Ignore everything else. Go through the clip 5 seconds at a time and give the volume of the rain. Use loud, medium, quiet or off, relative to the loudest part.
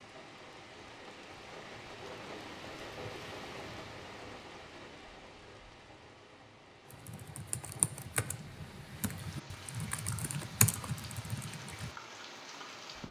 loud, medium, loud.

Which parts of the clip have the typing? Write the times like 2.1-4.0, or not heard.
6.9-11.9.